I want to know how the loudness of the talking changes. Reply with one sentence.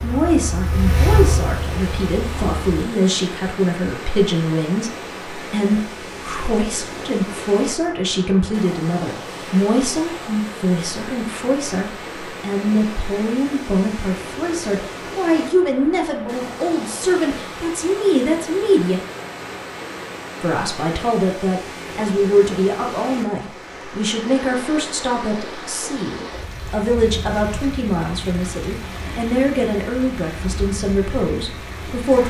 The loudness of the talking stays about the same.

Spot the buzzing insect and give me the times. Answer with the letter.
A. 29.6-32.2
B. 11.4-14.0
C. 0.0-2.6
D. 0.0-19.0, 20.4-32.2
C.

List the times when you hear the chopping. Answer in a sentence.
The chopping can't be heard in this clip.